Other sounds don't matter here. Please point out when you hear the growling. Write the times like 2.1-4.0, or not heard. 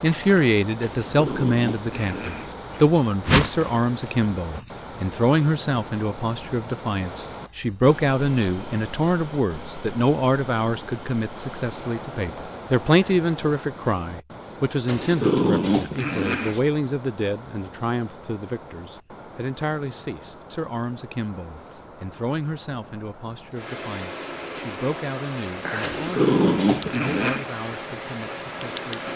0.8-2.5, 14.8-16.6, 25.8-27.4.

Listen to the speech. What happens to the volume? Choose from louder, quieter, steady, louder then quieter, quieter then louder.
quieter.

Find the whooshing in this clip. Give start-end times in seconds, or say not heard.
3.2-3.8.